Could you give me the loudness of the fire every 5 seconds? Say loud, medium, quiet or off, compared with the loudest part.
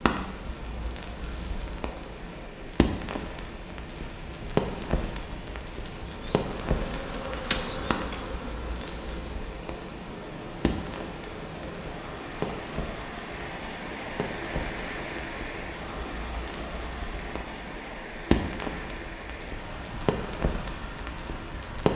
loud, medium, medium, loud, loud.